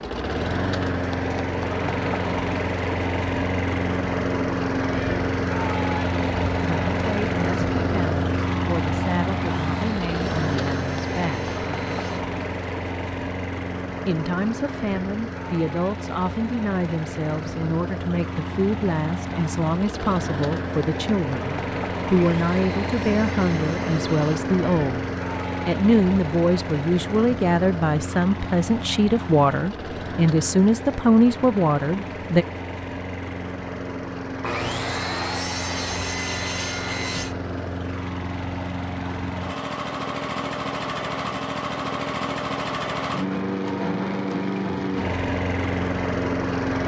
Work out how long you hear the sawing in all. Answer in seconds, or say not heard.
8 s.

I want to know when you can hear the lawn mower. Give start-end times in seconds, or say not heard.
0.0-46.8.